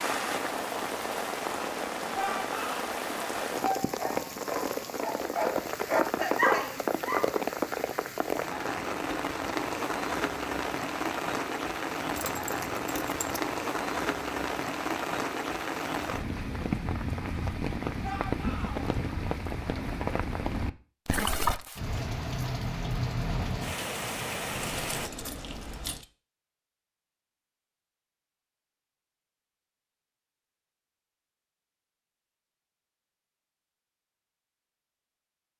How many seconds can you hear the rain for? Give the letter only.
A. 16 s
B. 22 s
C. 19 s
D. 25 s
D.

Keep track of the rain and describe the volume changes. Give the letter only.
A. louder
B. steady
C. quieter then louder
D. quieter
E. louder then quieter
B.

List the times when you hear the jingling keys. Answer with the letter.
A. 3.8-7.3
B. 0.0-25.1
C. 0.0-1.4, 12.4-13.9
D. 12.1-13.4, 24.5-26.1
D.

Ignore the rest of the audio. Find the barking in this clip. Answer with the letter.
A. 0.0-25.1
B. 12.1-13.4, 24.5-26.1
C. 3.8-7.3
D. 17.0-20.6
C.